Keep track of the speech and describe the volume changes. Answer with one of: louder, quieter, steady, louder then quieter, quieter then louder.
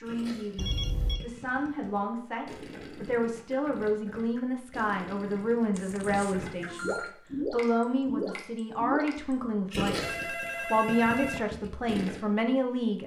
louder.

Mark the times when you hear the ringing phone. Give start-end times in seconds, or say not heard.
0.6-1.2, 5.7-7.1, 10.0-11.4.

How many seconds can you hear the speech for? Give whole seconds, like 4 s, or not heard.
13 s.